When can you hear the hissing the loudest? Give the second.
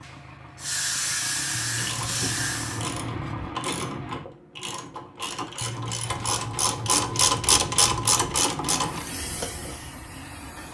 1 s.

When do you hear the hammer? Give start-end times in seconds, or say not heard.
not heard.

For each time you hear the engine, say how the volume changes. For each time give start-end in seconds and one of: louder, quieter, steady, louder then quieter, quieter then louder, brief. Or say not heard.
0.0-4.2 louder
8.5-10.6 brief.